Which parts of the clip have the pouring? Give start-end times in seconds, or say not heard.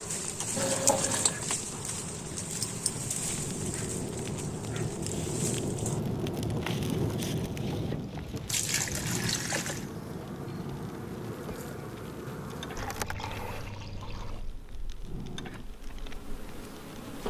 0.6-1.4, 8.4-9.8, 12.8-14.6.